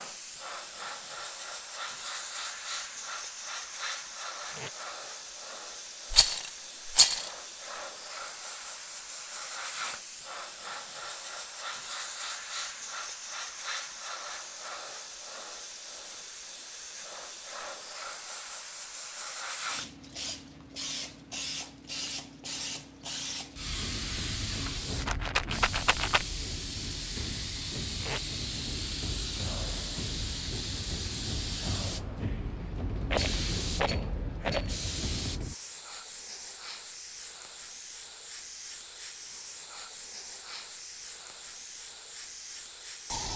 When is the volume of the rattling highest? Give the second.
7 s.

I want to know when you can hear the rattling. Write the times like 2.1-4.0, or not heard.
6.1-7.3, 24.5-26.2, 33.0-34.7.